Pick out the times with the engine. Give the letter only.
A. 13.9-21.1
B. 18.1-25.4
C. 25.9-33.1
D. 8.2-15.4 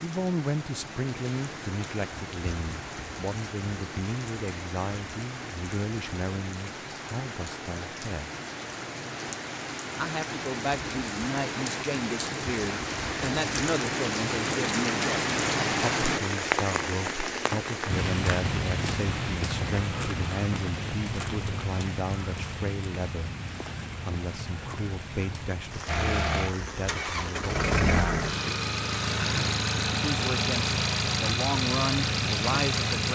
C.